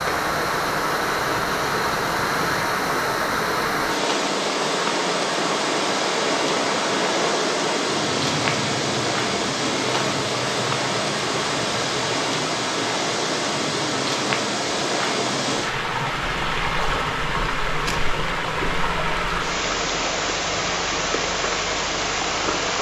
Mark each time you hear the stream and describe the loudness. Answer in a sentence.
The stream can be heard from 0.0 to 22.7 s, at a steady volume.